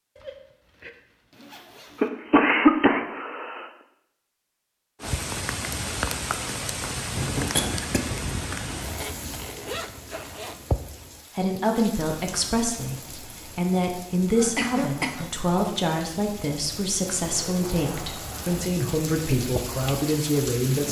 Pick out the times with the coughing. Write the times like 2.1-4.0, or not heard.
2.0-3.7, 7.5-8.0, 14.3-15.3.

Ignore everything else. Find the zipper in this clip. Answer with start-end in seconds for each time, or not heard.
0.1-2.1, 8.7-10.7, 17.3-18.7.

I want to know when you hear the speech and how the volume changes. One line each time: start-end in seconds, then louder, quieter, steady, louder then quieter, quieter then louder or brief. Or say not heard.
11.3-20.8 steady.